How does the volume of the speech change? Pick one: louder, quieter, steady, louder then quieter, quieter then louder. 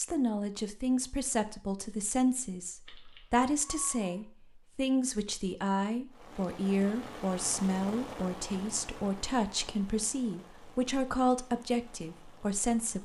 steady.